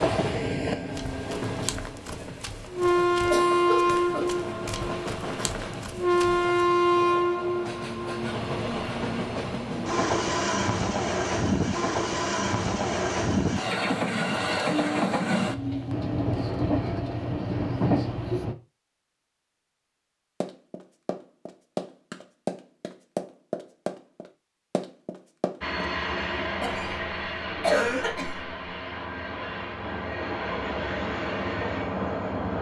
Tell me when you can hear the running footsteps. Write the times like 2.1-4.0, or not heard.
0.9-6.5, 20.4-25.6.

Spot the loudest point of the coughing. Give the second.
28 s.